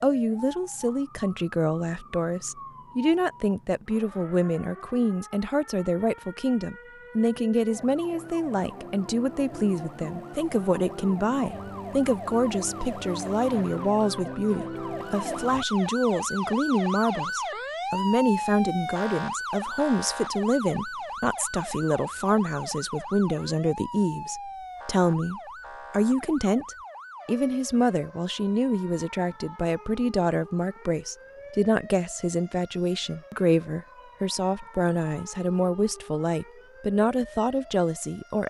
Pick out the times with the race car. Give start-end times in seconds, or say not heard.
not heard.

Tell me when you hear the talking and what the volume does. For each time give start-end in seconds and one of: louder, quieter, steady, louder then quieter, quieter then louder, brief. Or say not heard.
0.0-38.4 steady.